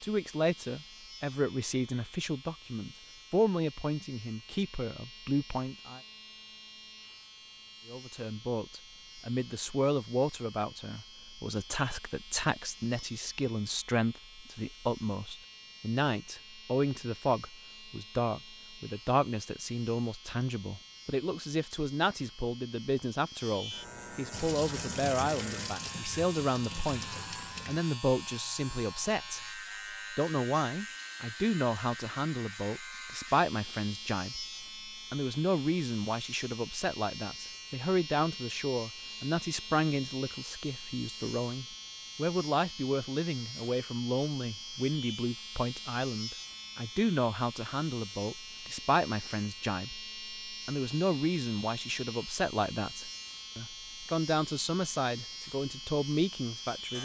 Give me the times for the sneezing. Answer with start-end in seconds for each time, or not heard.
not heard.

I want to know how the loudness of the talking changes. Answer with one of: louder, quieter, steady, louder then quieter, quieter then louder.
steady.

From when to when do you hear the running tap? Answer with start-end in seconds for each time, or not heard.
24.3-27.8.